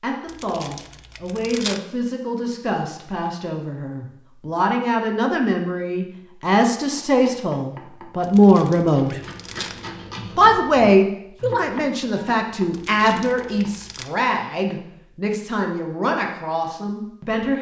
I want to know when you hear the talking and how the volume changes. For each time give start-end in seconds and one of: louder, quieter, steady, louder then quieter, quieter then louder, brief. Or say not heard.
0.0-9.2 louder
10.3-17.5 quieter.